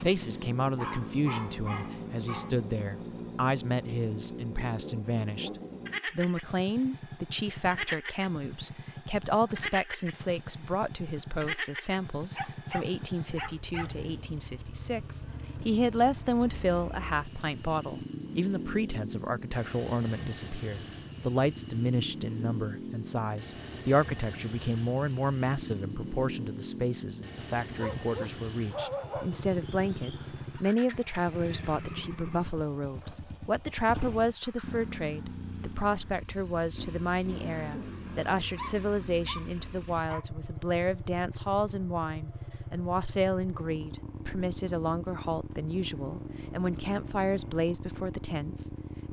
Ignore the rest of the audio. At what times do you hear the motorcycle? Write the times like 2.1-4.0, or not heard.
0.0-49.0.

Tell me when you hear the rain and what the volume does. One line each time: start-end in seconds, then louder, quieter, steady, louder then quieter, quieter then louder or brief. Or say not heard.
not heard.